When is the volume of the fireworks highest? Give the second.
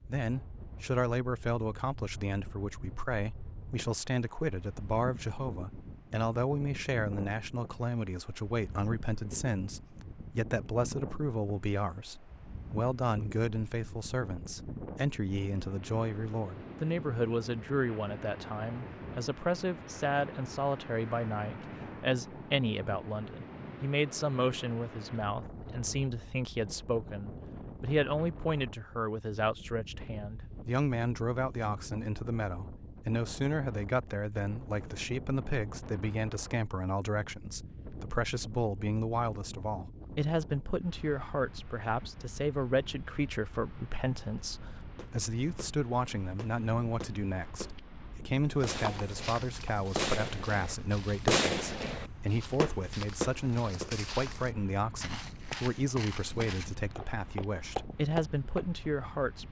51 s.